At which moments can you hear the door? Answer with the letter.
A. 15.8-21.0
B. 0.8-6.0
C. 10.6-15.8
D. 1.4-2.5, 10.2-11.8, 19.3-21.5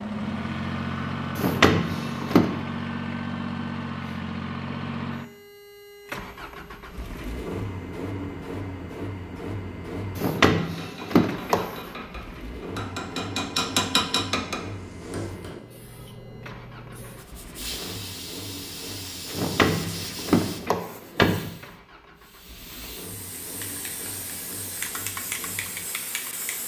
D.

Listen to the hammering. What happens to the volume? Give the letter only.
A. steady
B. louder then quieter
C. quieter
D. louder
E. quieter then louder
B.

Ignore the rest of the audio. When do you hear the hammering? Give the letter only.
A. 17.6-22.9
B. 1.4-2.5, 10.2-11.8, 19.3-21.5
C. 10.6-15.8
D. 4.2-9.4
C.